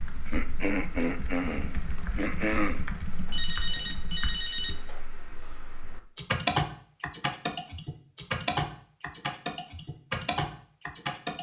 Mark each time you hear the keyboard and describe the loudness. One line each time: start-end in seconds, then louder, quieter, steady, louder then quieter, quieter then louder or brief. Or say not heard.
0.0-11.3 louder.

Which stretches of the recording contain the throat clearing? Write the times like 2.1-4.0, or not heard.
0.2-2.9.